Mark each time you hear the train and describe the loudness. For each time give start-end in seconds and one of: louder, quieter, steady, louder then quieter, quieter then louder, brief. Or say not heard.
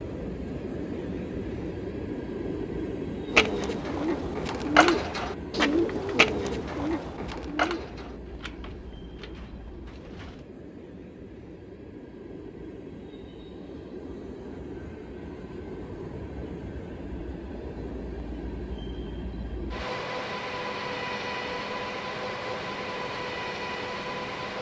0.0-24.5 quieter then louder.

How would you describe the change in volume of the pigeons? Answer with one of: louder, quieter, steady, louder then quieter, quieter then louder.
quieter.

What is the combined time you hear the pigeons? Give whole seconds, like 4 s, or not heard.
7 s.